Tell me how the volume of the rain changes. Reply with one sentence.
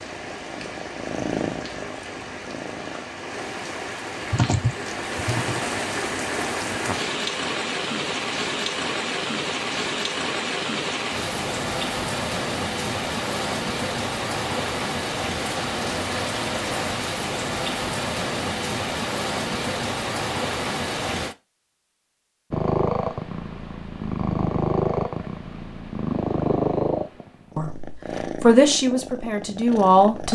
The volume of the rain goes up.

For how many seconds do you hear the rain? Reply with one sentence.
The rain can be heard for 21 seconds in total.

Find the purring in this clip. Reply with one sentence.
The purring can be heard from 0.0 to 3.0 s and from 22.5 to 30.3 s.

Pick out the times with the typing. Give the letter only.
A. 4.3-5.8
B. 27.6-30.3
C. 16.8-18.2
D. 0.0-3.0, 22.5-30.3
A.